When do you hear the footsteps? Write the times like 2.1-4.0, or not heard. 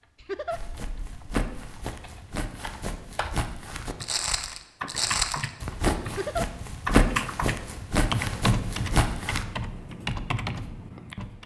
0.5-9.4.